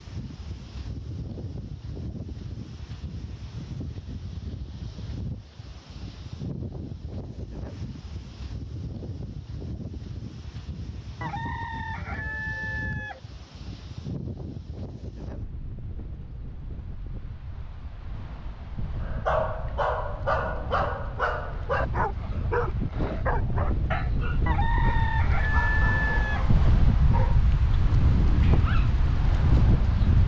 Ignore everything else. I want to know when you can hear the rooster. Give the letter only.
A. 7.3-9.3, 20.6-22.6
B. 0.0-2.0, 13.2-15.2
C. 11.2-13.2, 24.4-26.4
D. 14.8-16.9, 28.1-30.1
C.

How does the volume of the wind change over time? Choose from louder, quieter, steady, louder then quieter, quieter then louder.
louder.